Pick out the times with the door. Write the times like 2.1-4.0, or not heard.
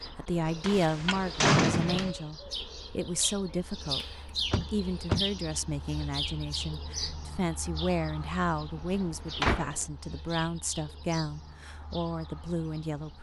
0.6-2.1, 4.5-5.2, 9.3-9.8.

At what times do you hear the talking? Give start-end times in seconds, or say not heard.
0.1-4.0, 4.7-13.1.